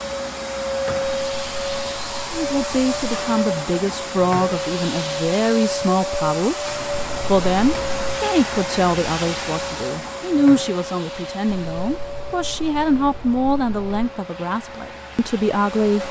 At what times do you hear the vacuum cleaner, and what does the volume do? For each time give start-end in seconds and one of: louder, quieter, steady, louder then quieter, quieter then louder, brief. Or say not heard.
0.0-16.0 quieter.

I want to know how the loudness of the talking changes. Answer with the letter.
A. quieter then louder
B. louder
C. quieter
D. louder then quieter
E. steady
E.